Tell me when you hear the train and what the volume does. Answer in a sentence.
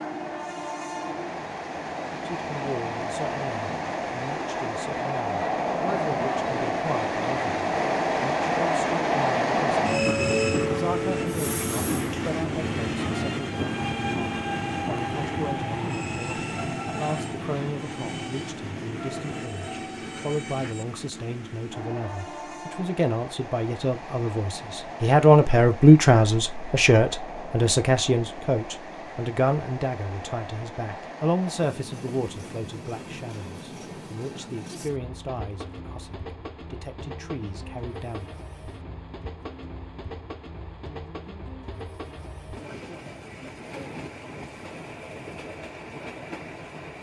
You can hear the train from 0.0 to 46.9 s, getting quieter.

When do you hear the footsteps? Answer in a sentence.
The footsteps can't be heard in this clip.